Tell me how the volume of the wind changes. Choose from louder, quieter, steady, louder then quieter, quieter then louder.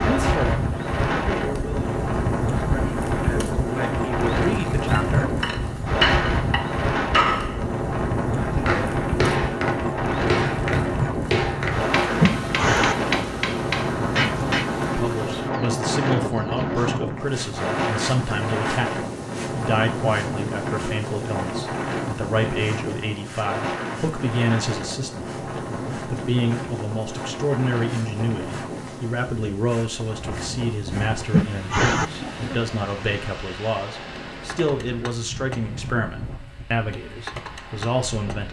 quieter.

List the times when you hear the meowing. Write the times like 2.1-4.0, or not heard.
12.2-13.2, 31.3-32.3.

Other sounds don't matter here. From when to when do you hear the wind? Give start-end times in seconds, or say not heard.
0.0-38.4.